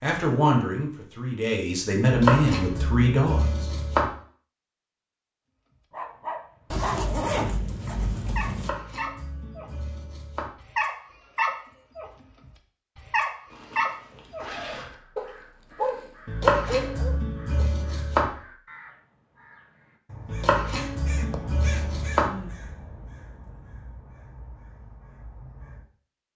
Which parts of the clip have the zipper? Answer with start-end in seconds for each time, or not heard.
6.7-8.7, 13.5-14.9.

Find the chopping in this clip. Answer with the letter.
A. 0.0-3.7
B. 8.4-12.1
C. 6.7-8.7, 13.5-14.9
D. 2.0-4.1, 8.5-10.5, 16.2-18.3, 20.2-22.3
D.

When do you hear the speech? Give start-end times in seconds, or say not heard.
0.0-3.7.